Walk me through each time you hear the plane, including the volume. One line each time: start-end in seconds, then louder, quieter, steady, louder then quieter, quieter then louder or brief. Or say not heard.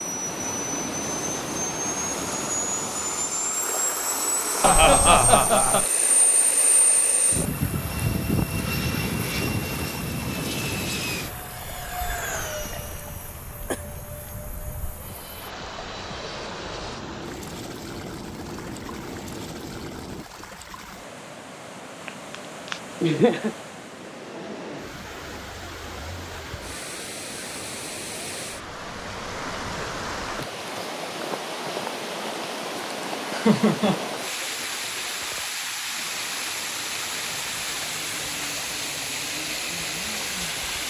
0.0-20.2 quieter.